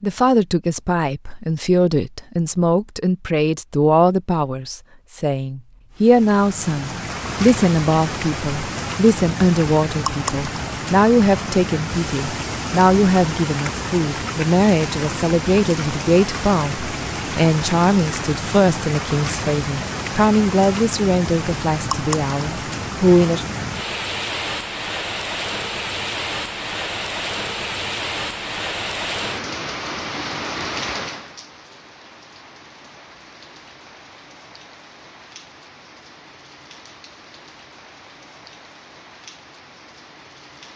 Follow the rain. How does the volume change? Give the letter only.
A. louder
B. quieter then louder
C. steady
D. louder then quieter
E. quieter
E.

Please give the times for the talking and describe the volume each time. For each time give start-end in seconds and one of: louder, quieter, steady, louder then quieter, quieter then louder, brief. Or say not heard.
0.0-23.4 steady.